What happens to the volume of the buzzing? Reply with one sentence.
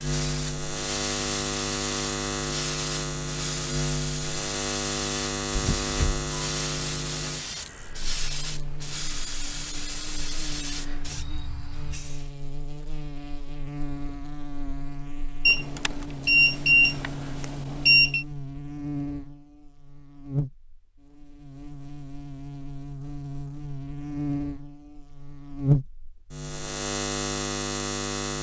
The volume of the buzzing goes down, then up.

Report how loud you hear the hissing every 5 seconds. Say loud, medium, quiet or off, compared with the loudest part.
loud, loud, loud, off, off, off.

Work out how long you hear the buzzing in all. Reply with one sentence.
You can hear the buzzing for 28 seconds altogether.